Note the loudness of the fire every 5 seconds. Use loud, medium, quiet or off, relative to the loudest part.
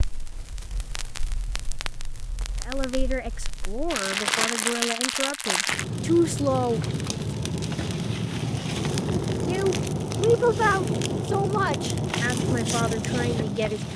medium, loud, loud.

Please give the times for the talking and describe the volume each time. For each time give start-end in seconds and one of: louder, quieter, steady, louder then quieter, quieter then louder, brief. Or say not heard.
2.6-6.8 louder
9.4-13.9 quieter.